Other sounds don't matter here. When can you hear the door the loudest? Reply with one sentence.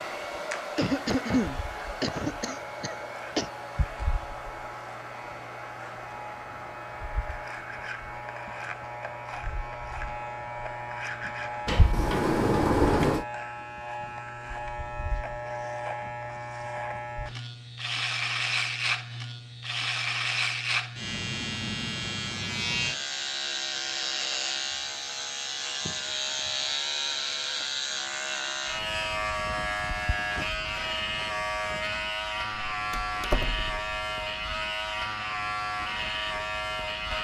The volume of the door peaks at 13 seconds.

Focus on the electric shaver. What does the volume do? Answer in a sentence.
The volume of the electric shaver goes up.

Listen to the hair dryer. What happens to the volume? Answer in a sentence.
The volume of the hair dryer goes down.